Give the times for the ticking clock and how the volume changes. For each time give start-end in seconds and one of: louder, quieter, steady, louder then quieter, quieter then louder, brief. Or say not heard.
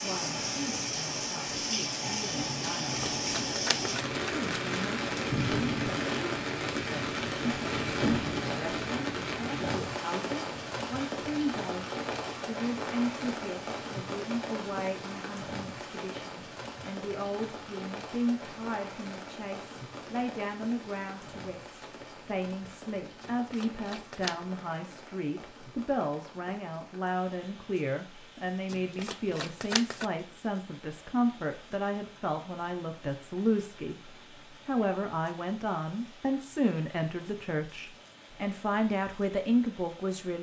not heard.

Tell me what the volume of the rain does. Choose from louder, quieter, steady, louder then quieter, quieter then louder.
quieter.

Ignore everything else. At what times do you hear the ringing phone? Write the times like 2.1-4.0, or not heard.
not heard.